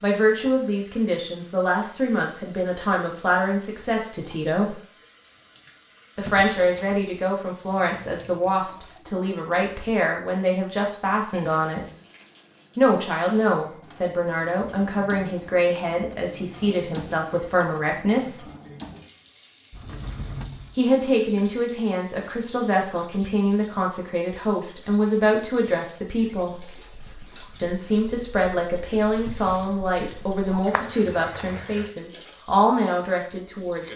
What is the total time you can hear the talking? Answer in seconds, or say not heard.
28 s.